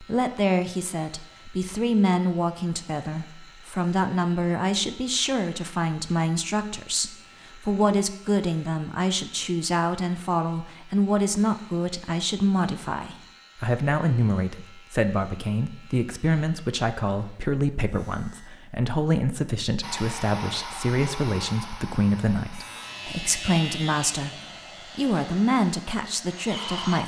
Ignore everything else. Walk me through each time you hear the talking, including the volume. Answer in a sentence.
The talking can be heard from 0.0 to 27.0 s, at a steady volume.